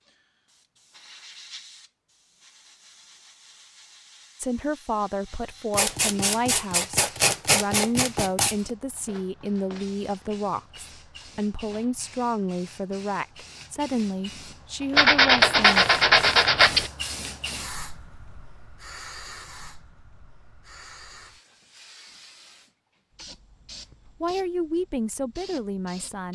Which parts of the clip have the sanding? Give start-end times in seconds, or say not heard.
5.7-8.6, 14.9-16.9.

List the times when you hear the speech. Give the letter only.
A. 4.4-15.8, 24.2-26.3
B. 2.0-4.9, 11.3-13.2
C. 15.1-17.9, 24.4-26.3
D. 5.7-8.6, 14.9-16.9
A.